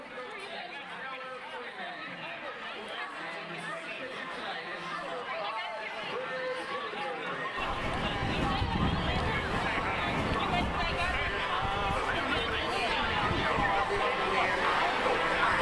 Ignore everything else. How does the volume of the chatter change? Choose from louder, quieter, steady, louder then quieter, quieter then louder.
louder.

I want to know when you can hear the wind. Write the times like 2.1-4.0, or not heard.
7.5-15.5.